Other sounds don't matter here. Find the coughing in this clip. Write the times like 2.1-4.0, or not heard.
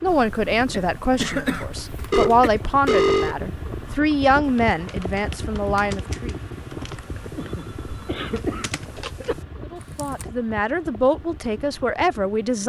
0.7-2.5, 7.3-9.3.